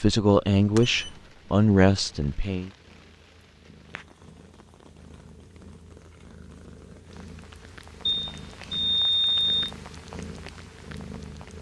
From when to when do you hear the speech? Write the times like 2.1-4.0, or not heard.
0.0-2.7.